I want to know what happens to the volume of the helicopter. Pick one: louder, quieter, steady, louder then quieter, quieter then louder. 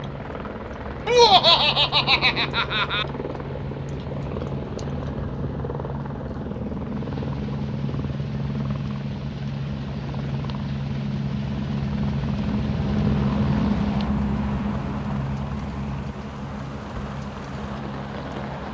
louder then quieter.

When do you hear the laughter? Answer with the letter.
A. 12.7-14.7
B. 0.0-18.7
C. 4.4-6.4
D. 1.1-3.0
D.